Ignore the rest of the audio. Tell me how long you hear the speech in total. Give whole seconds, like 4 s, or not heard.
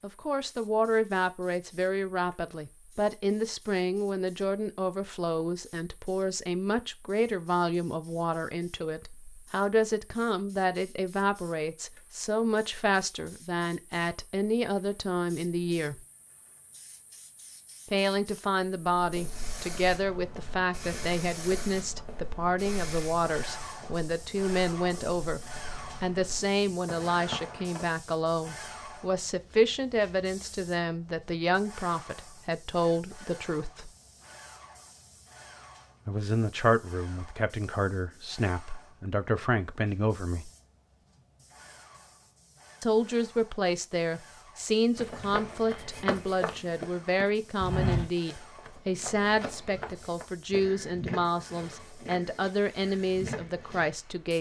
48 s.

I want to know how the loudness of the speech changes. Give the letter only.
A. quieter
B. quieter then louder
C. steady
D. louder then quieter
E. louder
C.